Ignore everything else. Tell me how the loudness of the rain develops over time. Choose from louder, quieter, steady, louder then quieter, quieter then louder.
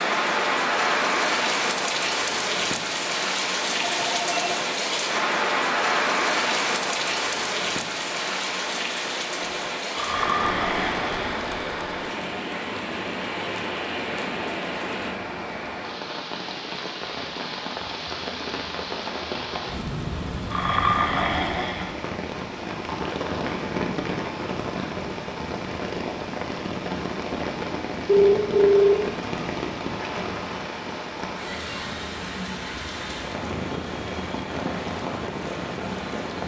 quieter.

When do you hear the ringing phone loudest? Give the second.
29 s.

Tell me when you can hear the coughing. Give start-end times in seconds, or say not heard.
not heard.